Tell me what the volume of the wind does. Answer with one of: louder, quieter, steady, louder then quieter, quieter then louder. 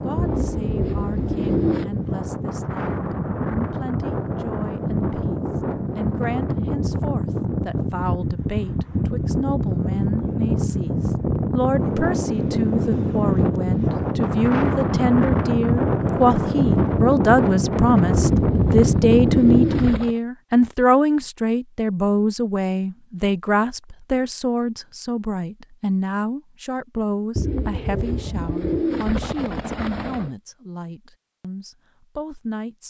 louder.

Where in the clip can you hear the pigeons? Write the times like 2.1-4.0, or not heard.
0.1-1.9, 18.2-20.1, 27.4-30.3.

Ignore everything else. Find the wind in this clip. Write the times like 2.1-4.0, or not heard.
0.0-19.9.